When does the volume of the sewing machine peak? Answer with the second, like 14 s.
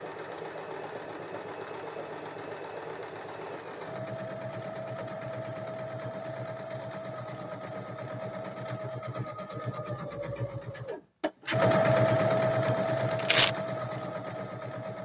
12 s.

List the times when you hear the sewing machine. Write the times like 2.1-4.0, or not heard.
0.0-15.0.